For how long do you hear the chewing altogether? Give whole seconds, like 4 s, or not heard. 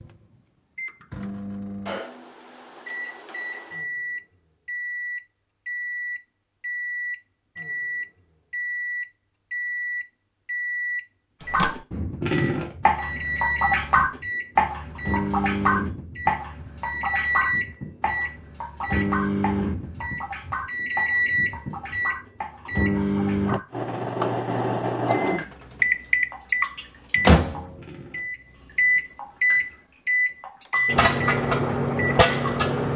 not heard.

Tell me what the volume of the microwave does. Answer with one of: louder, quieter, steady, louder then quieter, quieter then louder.
louder.